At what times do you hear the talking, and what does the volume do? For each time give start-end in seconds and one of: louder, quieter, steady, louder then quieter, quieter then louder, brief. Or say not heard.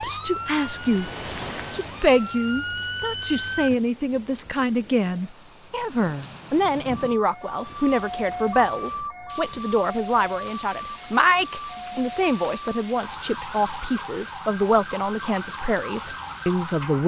0.0-1.1 brief
1.7-17.0 steady.